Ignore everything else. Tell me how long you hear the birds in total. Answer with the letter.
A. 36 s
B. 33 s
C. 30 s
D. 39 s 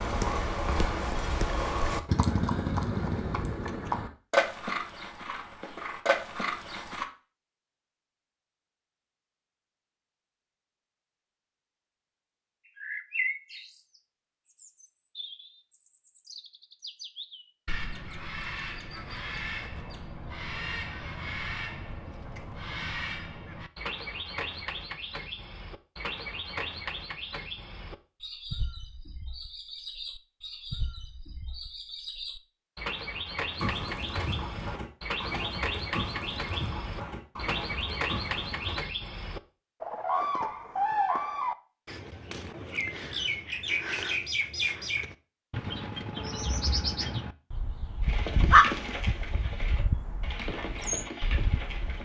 D.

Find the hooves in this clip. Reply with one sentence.
You can hear the hooves from 0.0 to 7.0 s, from 33.5 to 38.8 s and from 48.0 to 52.0 s.